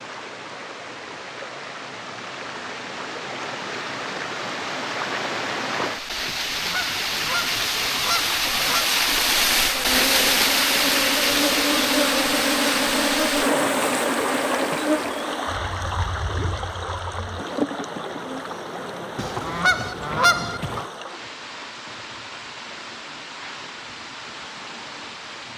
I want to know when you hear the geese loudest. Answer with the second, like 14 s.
20 s.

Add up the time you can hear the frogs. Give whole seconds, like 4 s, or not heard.
not heard.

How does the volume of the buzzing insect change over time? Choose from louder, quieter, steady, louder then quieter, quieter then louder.
quieter.